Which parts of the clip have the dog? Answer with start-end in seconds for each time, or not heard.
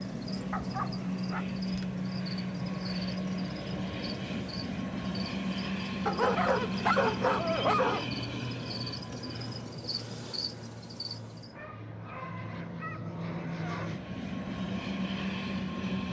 0.5-2.0, 6.0-8.1, 11.6-13.9.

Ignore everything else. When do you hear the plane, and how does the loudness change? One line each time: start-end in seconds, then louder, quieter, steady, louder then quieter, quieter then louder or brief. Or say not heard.
0.0-16.0 quieter then louder.